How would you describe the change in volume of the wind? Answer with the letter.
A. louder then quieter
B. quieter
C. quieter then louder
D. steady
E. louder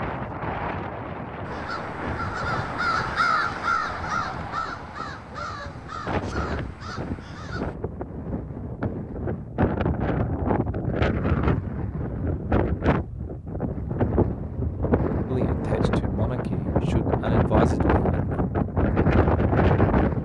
E.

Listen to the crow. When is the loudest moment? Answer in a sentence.
The volume of the crow peaks at 3 seconds.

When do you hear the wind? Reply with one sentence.
The wind can be heard from 0.0 to 20.1 s.